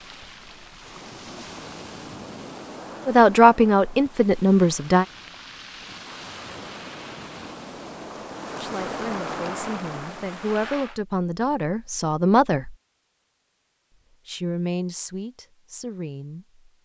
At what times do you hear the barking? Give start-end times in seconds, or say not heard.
not heard.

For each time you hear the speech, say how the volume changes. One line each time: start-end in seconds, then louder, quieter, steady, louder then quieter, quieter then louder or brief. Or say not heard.
3.0-5.0 brief
8.5-12.8 louder
14.2-16.8 brief.